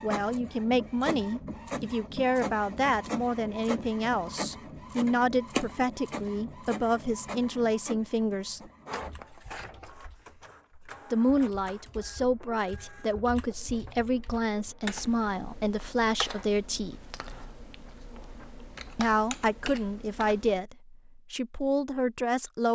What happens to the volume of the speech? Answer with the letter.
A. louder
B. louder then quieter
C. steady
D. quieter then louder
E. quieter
C.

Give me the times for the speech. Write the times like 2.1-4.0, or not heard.
0.0-8.7, 11.1-17.1, 18.9-22.6.